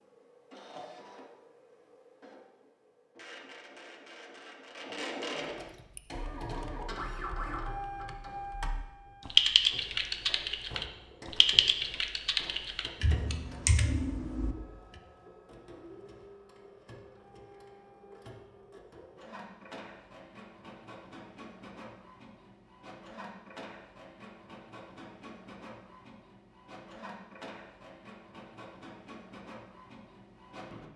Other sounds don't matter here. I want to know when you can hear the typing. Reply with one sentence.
The typing can be heard from 5.7 to 14.6 s.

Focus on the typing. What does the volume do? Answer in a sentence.
The loudness of the typing goes up, then down.